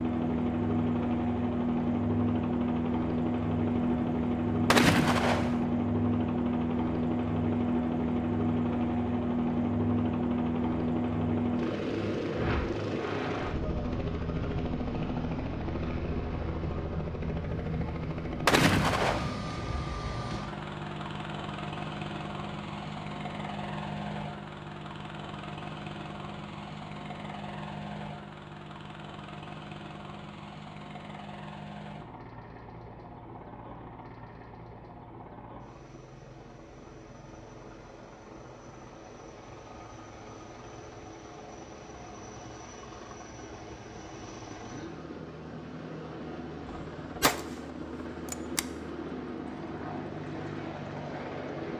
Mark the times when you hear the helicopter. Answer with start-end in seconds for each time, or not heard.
0.0-51.7.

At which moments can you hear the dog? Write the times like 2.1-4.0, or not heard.
not heard.